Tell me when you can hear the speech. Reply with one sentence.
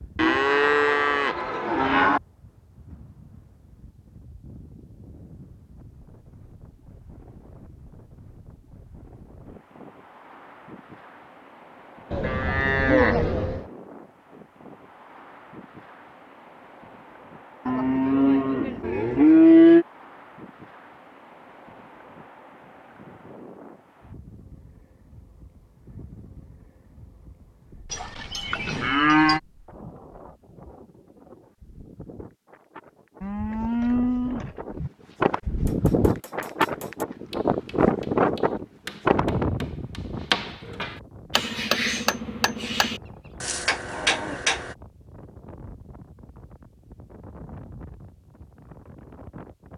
You can't hear the speech here.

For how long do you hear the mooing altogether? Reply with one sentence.
You can hear the mooing for 10 seconds altogether.